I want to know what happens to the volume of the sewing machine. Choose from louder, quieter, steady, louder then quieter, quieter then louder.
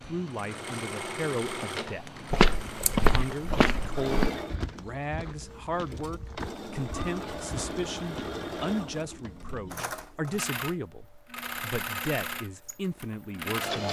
steady.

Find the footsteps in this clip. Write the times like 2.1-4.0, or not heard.
2.3-8.4.